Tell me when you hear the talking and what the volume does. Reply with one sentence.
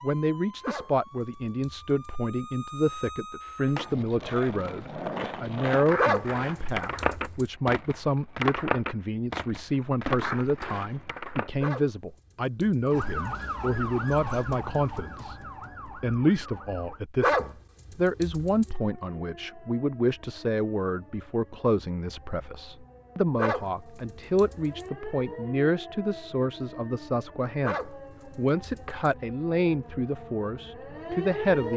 The talking can be heard from 0.0 to 31.7 s, at a steady volume.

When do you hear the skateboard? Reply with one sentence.
The skateboard can be heard from 3.6 to 11.5 s.